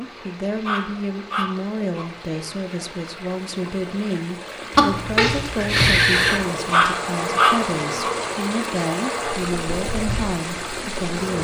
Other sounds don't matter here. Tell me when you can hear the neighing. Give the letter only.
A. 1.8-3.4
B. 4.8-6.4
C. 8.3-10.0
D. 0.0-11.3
B.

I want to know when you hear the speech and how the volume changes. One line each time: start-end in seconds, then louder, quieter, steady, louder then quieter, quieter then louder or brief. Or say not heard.
0.0-11.3 steady.